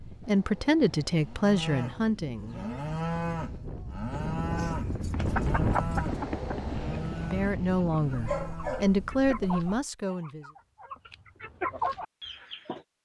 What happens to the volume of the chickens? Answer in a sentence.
The loudness of the chickens goes down, then up.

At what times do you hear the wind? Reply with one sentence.
The wind can be heard from 0.0 to 9.5 s.